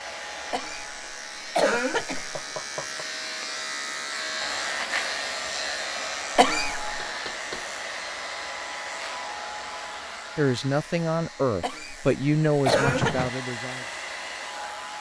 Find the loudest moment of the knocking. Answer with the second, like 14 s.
13 s.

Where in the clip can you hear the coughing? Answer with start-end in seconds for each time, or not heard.
0.5-2.4, 6.3-7.0, 11.6-13.2.